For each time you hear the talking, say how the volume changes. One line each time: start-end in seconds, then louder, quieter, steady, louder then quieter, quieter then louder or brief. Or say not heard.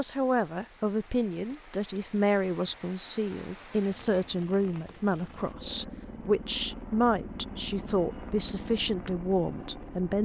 0.0-10.2 steady.